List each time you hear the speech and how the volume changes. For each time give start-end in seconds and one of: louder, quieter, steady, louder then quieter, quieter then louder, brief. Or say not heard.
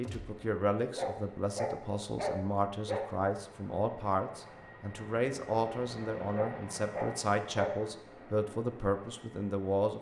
0.0-9.9 steady.